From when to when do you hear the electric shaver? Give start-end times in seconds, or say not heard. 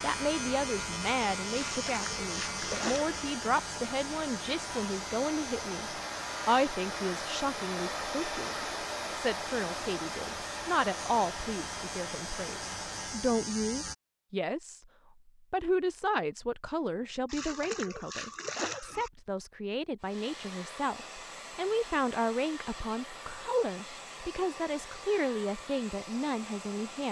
0.0-13.9.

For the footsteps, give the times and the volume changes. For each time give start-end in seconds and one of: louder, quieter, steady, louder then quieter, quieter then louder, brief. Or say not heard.
not heard.